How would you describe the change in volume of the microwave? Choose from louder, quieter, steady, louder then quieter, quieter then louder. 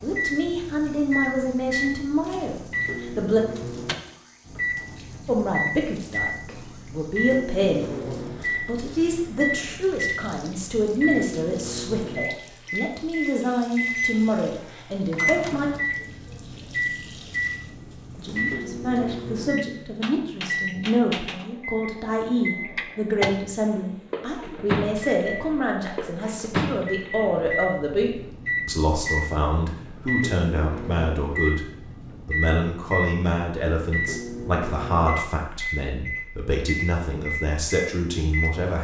steady.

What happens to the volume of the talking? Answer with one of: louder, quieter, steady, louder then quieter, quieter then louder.
steady.